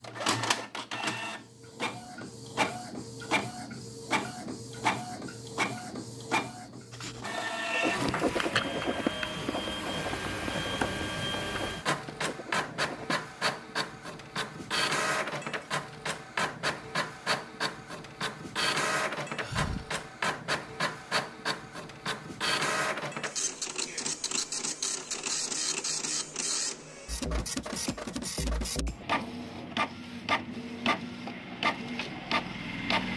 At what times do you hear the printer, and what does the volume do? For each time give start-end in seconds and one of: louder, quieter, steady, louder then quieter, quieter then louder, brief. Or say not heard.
0.0-33.1 steady.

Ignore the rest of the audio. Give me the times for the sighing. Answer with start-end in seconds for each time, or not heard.
19.4-20.0.